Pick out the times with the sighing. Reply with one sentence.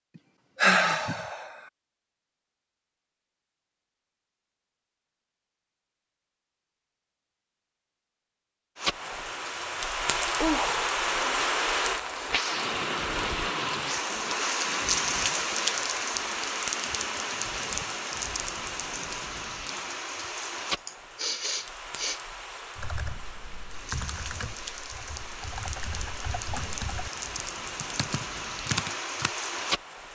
You can hear the sighing from 0.6 to 1.4 s, from 10.4 to 11.1 s and from 20.9 to 22.2 s.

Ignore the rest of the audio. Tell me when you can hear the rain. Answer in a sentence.
The rain can be heard from 8.8 to 30.0 s.